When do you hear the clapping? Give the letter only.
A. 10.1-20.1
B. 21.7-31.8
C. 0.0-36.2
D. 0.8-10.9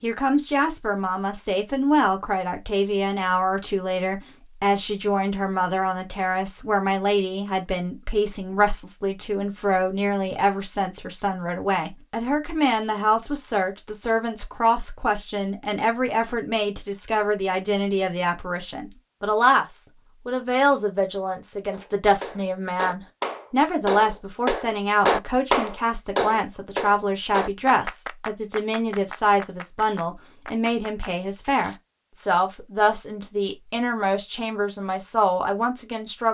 B.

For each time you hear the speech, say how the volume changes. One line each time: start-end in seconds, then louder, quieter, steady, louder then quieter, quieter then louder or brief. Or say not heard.
0.0-36.2 steady.